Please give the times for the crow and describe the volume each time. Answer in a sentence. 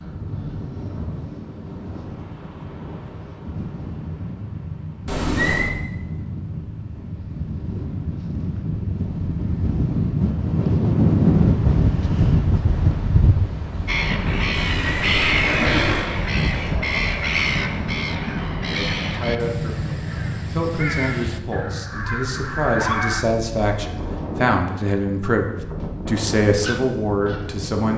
The crow can be heard from 13.8 to 23.2 s, getting quieter.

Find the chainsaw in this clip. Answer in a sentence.
You can't hear the chainsaw here.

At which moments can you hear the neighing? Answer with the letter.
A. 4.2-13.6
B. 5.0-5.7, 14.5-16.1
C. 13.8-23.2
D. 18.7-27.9
B.